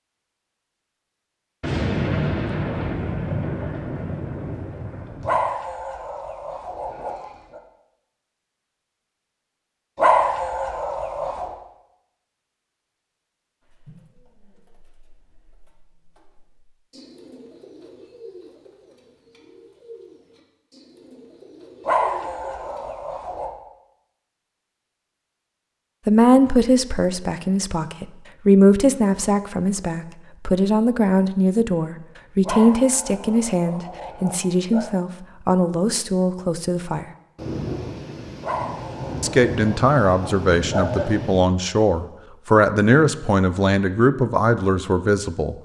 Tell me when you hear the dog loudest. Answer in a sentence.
The volume of the dog peaks at 10 seconds.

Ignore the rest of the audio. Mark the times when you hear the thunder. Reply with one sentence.
The thunder can be heard from 1.6 to 5.4 s and from 37.4 to 41.4 s.